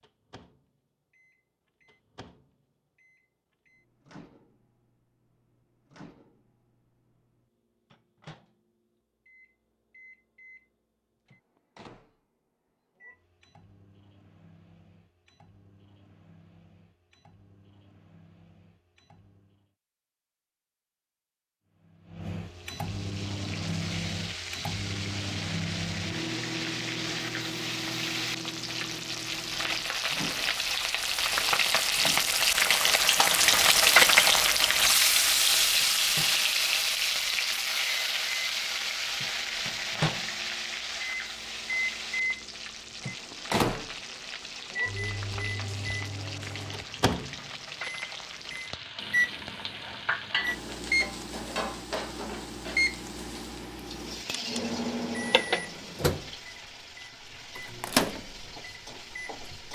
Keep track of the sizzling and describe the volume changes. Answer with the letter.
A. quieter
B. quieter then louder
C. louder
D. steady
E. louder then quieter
E.